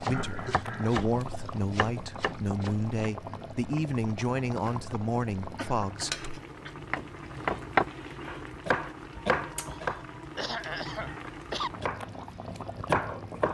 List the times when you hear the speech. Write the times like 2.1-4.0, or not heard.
0.0-6.4.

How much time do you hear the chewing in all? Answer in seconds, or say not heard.
not heard.